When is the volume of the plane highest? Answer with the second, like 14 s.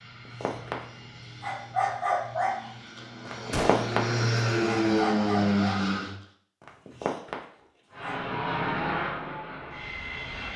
5 s.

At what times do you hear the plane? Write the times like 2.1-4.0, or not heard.
0.0-6.2, 7.9-10.5.